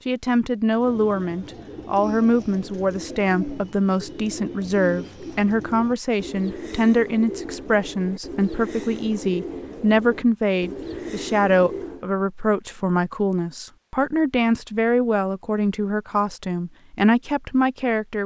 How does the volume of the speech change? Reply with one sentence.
The volume of the speech stays about the same.